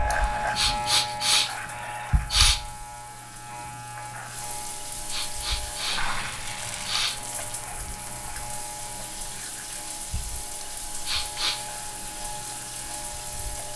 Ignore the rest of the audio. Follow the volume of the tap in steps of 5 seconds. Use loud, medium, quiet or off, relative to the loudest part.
medium, loud, loud.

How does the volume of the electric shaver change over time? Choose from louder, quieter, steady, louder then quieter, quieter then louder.
quieter.